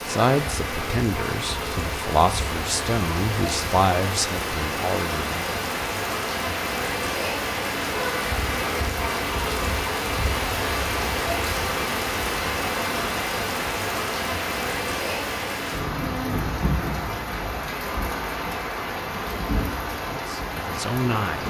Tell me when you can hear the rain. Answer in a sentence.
The rain can be heard from 0.0 to 21.4 s.